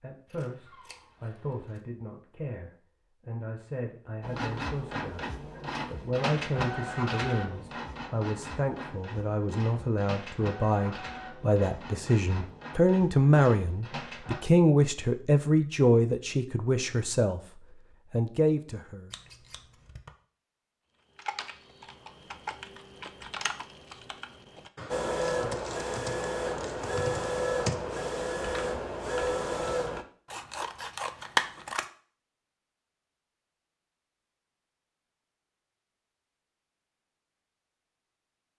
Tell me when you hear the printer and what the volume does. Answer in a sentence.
You can hear the printer from 4.2 to 14.4 s, getting quieter; and from 24.9 to 30.1 s, at a steady volume.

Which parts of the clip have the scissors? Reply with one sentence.
You can hear the scissors from 0.2 to 1.8 s, from 19.1 to 20.1 s and from 30.3 to 31.9 s.